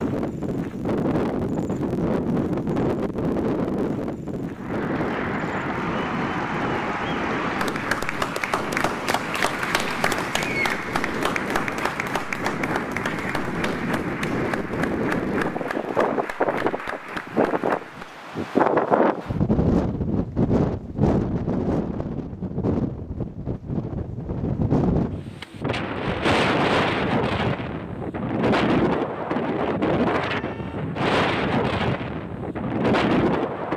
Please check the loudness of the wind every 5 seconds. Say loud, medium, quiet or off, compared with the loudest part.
loud, medium, medium, loud, loud, loud, loud.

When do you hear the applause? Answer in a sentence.
You can hear the applause from 4.5 to 18.2 s.